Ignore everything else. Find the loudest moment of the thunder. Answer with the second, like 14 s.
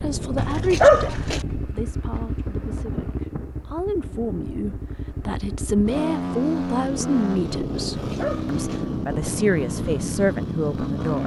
3 s.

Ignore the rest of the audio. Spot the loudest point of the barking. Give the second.
1 s.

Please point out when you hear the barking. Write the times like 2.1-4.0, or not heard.
0.3-1.4, 8.0-8.8.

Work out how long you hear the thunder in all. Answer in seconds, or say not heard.
3 s.